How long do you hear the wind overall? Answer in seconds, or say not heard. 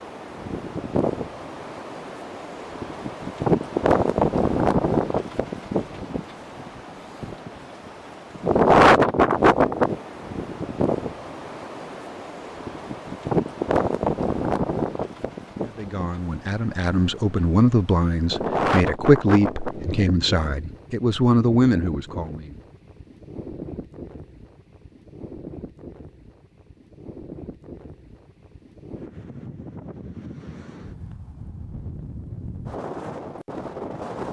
34 s.